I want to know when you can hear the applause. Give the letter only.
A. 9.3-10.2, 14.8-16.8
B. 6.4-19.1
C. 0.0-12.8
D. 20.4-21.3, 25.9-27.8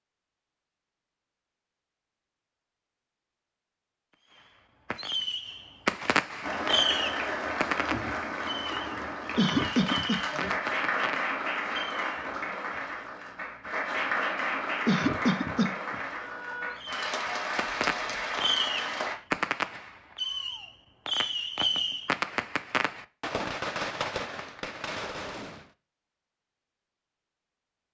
B.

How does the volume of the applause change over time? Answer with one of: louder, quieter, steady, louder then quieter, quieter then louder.
steady.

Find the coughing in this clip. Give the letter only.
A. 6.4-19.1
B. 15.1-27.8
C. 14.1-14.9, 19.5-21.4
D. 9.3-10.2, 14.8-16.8
D.